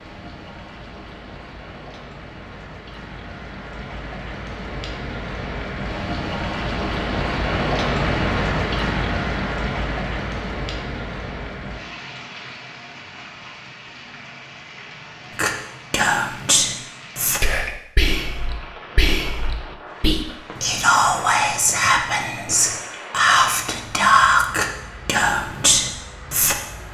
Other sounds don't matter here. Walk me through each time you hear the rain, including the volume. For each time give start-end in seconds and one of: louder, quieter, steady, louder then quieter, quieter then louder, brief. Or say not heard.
0.0-26.9 louder then quieter.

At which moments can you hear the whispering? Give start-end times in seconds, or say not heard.
15.3-26.6.